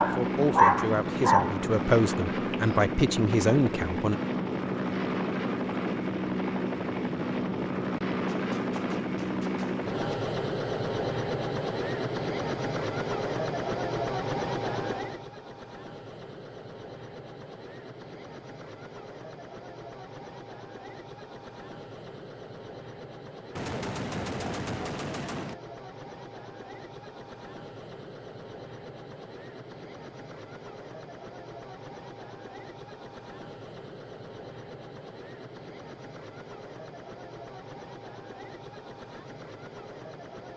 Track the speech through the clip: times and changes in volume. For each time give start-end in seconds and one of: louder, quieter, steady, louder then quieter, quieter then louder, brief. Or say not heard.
0.1-4.2 louder.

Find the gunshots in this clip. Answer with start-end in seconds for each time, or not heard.
8.3-10.2, 23.6-25.6.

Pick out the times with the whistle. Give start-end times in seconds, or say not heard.
not heard.